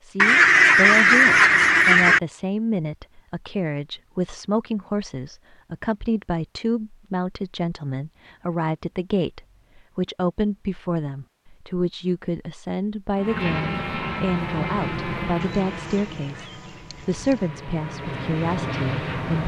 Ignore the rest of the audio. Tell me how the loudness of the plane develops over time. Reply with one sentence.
The loudness of the plane goes down, then up.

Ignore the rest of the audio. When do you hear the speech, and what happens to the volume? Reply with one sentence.
The speech can be heard from 0.0 to 19.4 s, at a steady volume.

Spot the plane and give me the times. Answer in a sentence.
You can hear the plane from 13.2 to 19.4 s.